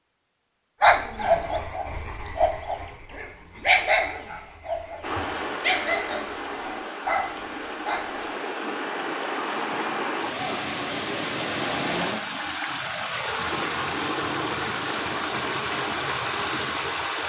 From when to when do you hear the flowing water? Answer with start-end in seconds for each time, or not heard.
5.0-17.2.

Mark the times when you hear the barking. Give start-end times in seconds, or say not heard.
0.8-8.3.